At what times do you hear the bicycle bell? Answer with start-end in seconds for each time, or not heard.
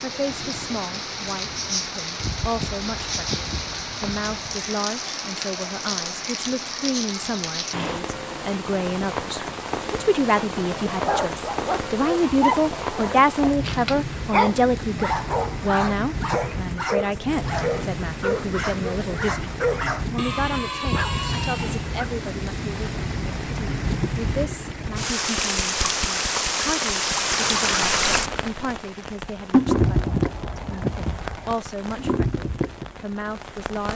not heard.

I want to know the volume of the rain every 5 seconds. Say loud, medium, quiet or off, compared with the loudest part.
medium, medium, medium, medium, medium, loud, medium.